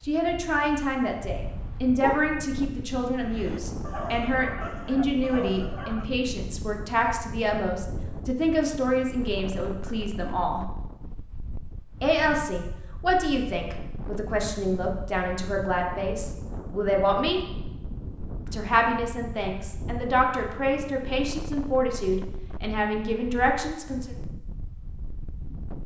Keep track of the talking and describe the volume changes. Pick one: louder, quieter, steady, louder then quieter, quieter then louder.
steady.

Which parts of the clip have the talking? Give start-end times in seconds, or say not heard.
0.0-10.7, 12.0-17.4, 18.4-24.1.